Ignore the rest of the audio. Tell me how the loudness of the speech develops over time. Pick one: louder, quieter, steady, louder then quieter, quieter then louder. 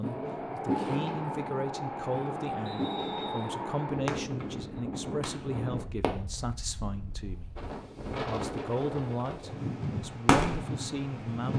steady.